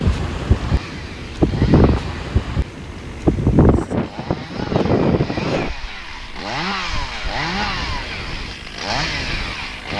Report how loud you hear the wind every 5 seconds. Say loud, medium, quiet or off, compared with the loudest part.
loud, medium.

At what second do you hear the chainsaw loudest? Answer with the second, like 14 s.
7 s.